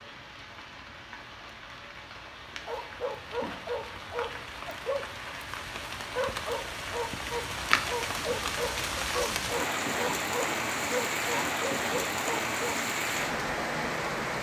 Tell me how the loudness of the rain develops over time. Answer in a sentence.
The volume of the rain goes up.